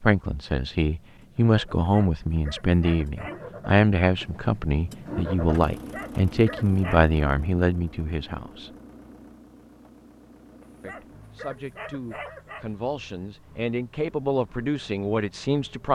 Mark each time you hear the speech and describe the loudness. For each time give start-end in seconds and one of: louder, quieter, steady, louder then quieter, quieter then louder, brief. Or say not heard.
0.0-8.7 steady
10.8-15.9 louder.